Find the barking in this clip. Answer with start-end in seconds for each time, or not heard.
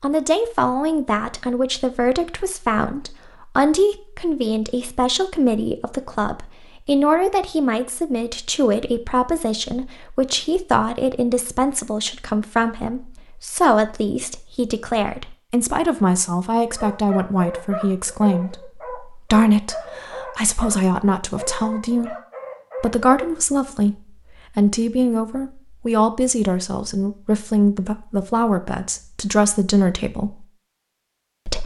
16.6-23.1.